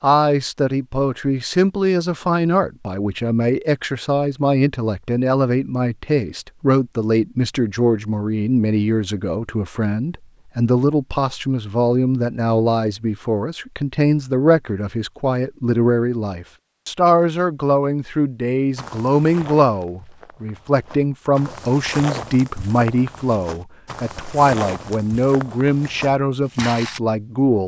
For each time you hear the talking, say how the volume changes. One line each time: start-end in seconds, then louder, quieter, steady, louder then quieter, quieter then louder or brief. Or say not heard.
0.0-27.6 steady.